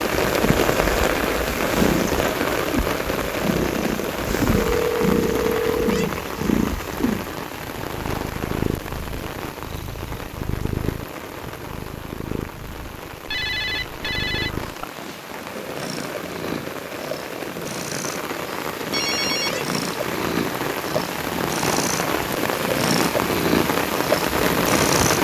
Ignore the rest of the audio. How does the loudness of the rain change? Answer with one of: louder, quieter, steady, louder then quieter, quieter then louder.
quieter then louder.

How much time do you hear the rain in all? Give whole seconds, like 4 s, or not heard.
25 s.